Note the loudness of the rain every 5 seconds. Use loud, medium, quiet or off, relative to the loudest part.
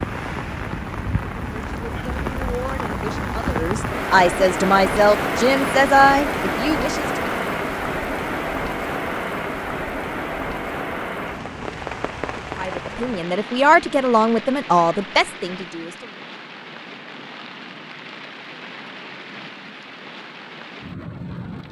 loud, loud, medium, quiet, medium.